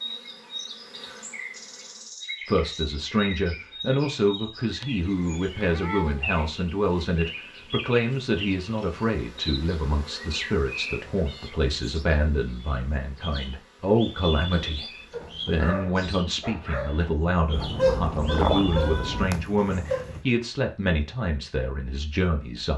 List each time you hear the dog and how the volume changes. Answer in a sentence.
You can hear the dog from 14.6 to 20.2 s, getting louder then quieter.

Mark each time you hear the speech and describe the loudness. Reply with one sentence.
The speech can be heard from 2.5 to 22.7 s, at a steady volume.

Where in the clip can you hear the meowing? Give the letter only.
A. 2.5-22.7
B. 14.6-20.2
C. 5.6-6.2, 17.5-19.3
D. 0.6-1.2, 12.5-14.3
C.